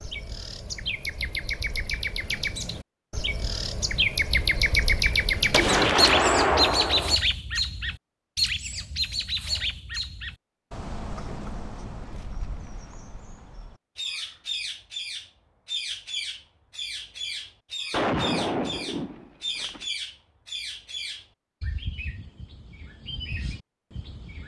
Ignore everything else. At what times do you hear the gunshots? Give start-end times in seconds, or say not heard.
5.5-7.2, 17.9-19.9.